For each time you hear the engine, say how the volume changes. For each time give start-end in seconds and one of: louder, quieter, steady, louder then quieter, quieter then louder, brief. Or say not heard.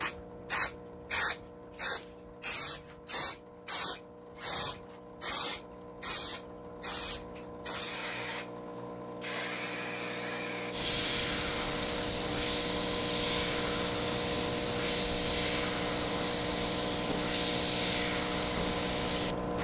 0.0-19.6 louder.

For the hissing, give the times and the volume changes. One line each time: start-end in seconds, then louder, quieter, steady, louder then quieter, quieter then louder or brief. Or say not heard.
0.0-19.6 steady.